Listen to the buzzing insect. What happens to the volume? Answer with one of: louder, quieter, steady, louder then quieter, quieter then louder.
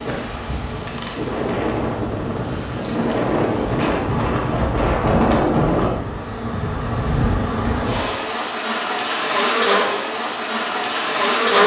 louder.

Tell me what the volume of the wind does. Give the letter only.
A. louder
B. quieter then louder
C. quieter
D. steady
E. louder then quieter
A.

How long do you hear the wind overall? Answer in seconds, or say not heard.
6 s.